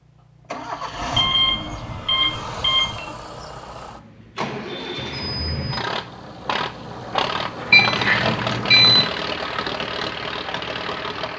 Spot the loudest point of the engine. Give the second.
8 s.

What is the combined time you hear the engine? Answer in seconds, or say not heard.
11 s.